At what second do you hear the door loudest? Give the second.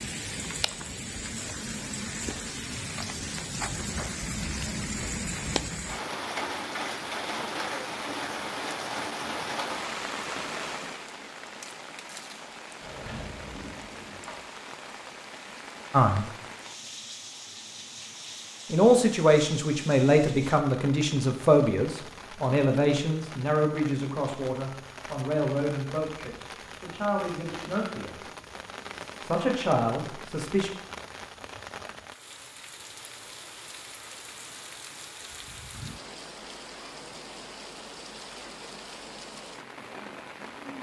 13 s.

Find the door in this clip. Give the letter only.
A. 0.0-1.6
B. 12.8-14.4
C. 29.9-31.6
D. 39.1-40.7
B.